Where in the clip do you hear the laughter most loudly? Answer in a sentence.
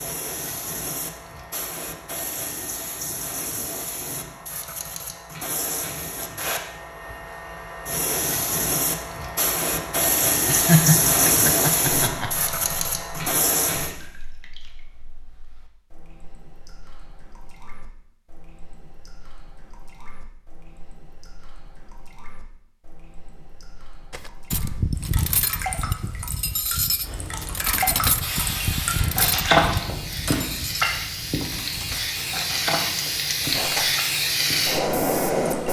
The volume of the laughter peaks at 11 seconds.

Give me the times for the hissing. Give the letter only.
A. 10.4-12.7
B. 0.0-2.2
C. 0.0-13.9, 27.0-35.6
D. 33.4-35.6
C.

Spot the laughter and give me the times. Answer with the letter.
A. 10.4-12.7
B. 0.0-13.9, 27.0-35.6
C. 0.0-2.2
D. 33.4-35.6
A.